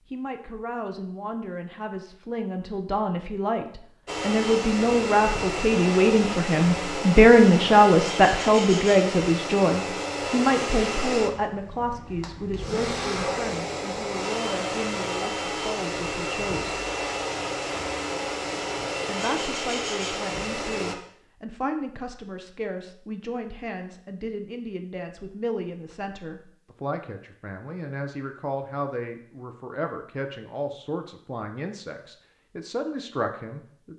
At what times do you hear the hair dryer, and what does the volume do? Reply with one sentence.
You can hear the hair dryer from 4.0 to 20.9 s, at a steady volume.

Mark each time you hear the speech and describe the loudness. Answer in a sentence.
You can hear the speech from 0.1 to 16.8 s, getting louder then quieter; and from 19.1 to 33.9 s, at a steady volume.